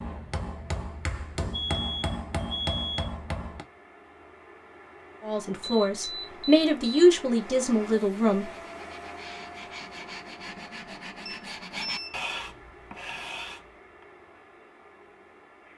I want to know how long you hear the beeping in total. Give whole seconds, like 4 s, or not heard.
4 s.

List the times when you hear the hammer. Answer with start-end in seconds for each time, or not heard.
0.0-3.6.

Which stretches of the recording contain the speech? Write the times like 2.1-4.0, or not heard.
5.2-8.4.